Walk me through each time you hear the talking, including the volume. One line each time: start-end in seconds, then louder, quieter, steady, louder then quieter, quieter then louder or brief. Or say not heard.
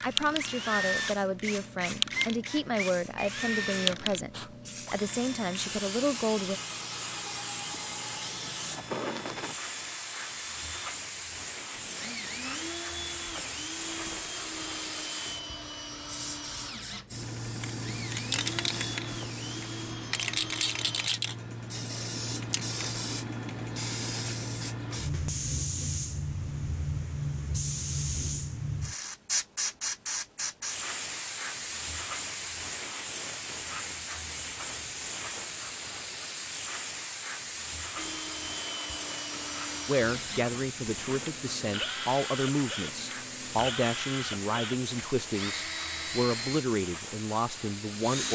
0.0-6.6 steady
39.9-48.3 steady.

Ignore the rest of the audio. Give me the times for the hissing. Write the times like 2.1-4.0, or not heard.
0.0-48.3.